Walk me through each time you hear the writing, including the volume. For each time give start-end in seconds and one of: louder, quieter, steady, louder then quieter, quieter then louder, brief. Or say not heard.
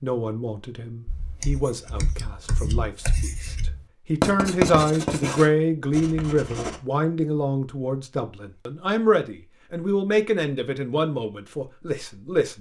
1.1-6.8 louder then quieter.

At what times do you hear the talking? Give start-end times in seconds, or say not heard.
0.0-12.5.